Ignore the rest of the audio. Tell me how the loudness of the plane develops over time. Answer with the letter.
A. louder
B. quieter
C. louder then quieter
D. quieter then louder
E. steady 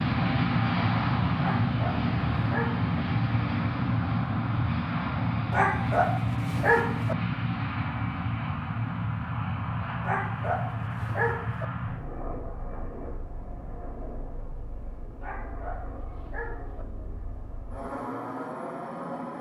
B.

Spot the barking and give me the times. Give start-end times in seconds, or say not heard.
1.4-2.9, 5.5-7.2, 10.0-11.7, 15.2-16.9.